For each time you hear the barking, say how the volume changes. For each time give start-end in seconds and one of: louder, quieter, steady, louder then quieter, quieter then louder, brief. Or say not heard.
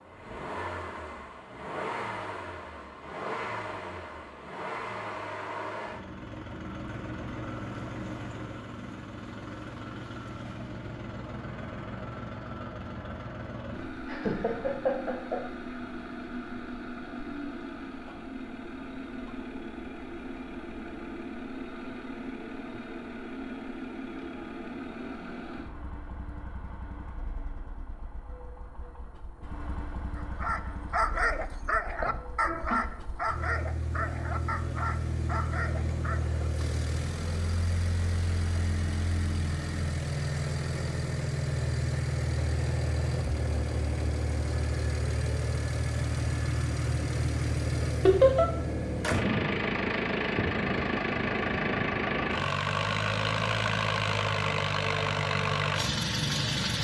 30.1-36.5 quieter.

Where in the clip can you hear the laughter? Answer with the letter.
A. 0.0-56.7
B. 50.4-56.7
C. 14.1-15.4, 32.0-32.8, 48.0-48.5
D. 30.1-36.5
C.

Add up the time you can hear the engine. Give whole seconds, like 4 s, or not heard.
57 s.